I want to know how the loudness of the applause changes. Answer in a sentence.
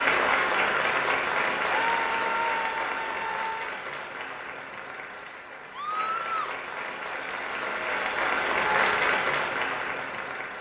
The loudness of the applause goes down, then up.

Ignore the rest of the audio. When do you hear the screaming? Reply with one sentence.
The screaming can be heard from 1.7 to 3.6 s and from 5.7 to 6.5 s.